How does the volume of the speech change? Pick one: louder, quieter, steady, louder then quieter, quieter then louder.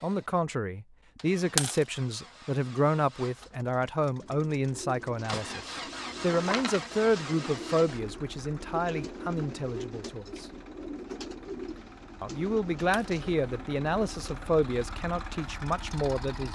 steady.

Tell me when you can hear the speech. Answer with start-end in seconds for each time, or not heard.
0.0-10.4, 12.2-16.5.